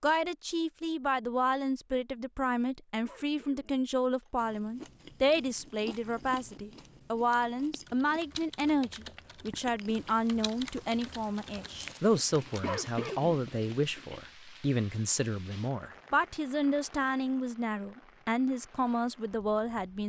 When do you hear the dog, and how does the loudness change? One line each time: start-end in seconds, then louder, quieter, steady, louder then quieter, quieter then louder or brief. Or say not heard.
not heard.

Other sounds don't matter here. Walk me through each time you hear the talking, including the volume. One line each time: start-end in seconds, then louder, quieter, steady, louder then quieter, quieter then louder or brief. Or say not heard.
0.0-20.0 steady.